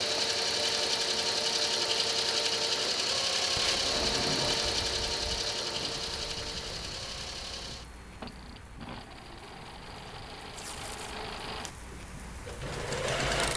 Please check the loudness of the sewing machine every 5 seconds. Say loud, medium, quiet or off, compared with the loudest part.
loud, medium, medium.